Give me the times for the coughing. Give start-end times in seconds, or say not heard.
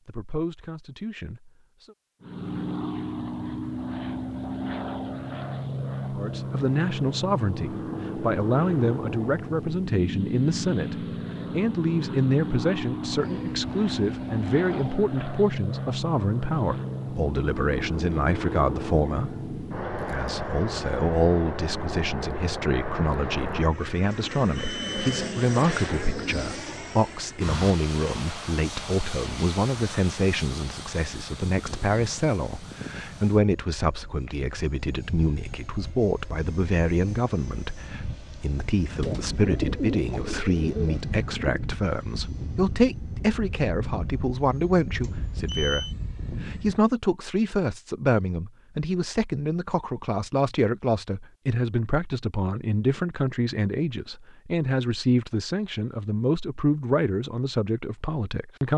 not heard.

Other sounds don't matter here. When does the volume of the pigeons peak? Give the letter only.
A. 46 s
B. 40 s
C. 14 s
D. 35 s
B.